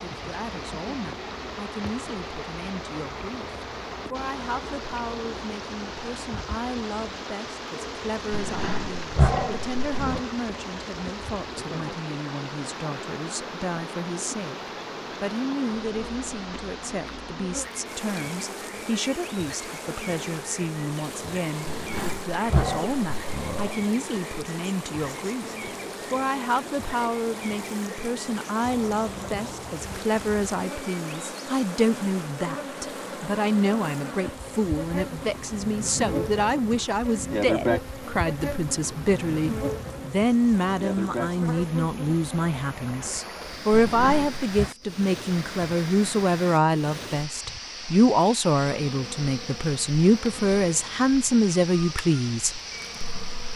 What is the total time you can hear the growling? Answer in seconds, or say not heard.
5 s.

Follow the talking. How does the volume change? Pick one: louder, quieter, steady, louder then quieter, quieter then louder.
louder.